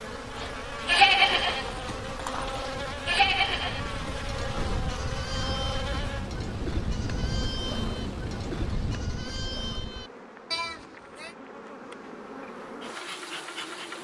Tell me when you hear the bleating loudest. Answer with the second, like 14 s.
1 s.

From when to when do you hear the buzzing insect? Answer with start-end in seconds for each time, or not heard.
0.0-13.9.